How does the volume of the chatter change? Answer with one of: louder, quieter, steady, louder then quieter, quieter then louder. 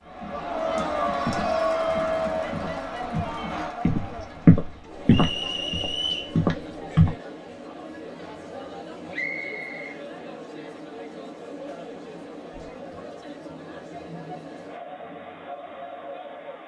quieter.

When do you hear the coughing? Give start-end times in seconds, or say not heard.
not heard.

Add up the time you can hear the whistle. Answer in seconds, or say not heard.
2 s.